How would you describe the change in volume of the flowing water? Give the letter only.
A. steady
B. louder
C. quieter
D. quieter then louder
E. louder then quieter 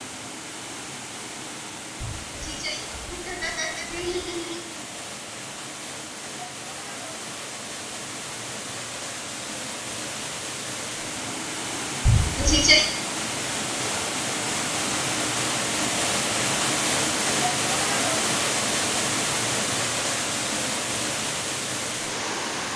B.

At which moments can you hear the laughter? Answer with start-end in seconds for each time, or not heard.
2.0-4.7, 12.1-12.8.